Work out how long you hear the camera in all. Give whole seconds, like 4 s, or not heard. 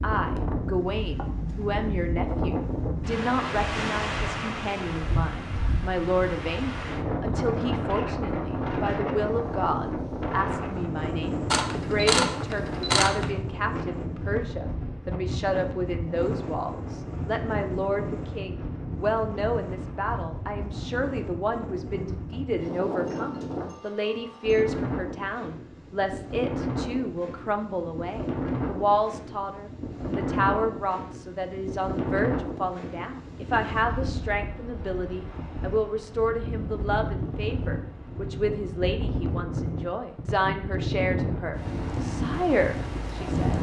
2 s.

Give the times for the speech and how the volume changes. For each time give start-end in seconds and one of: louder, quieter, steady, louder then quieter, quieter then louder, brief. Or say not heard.
0.0-43.5 steady.